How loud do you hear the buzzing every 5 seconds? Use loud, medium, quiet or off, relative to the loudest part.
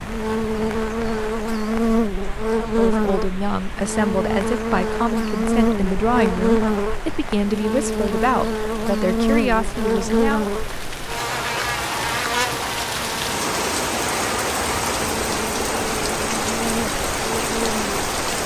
loud, loud, loud, medium.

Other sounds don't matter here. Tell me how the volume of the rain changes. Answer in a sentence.
The volume of the rain goes up.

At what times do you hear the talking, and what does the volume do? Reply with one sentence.
You can hear the talking from 2.6 to 10.6 s, at a steady volume.